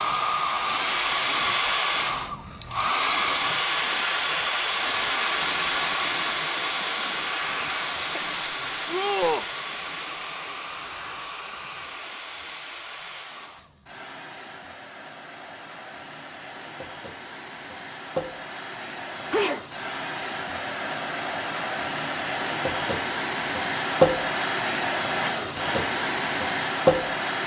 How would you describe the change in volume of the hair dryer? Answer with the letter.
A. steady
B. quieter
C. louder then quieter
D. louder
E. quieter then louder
E.